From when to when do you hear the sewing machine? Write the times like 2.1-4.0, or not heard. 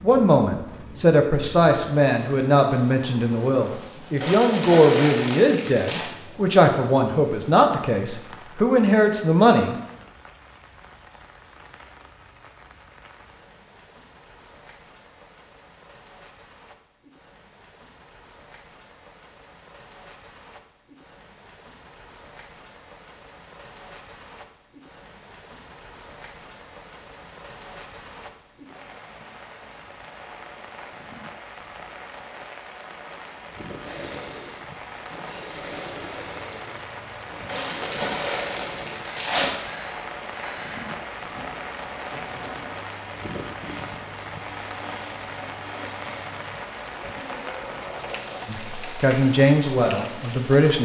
33.8-48.5.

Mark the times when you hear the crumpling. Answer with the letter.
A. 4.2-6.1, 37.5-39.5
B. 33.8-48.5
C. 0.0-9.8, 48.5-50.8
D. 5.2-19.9
A.